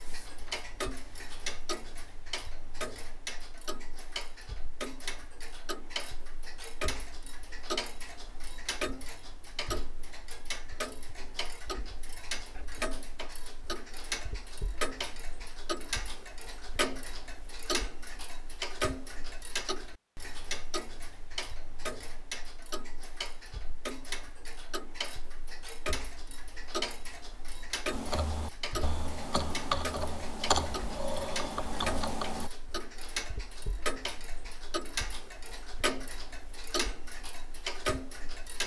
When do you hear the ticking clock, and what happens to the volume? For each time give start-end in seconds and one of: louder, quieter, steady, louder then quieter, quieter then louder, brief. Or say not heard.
0.0-38.6 steady.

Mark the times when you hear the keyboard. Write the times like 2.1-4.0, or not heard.
27.9-32.5.